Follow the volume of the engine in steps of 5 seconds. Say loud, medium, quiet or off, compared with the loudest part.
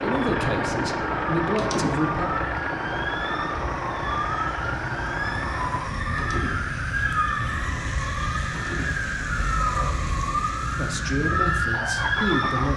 loud, medium, medium.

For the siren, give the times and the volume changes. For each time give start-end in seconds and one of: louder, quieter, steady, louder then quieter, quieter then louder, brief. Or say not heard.
0.0-12.7 louder.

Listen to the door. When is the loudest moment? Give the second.
2 s.